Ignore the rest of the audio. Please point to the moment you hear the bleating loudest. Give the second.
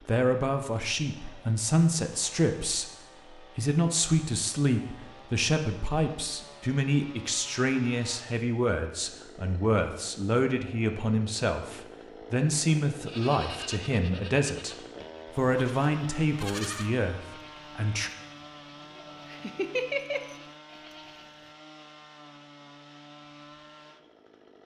20 s.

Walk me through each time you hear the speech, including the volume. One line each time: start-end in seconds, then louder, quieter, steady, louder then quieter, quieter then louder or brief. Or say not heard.
0.1-14.8 steady
15.3-18.1 brief.